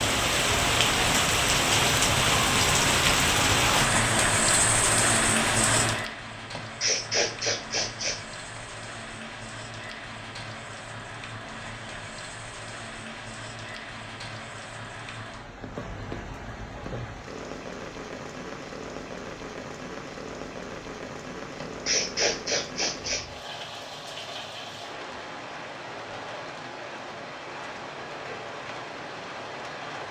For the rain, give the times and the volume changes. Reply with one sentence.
The rain can be heard from 0.0 to 30.0 s, getting quieter.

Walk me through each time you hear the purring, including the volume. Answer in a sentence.
The purring can't be heard in this clip.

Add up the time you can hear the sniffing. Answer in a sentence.
The sniffing can be heard for 4 seconds in total.